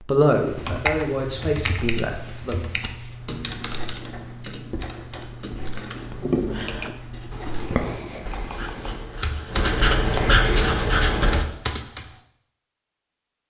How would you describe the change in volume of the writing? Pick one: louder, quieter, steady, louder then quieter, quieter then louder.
louder.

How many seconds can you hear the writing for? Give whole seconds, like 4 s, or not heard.
11 s.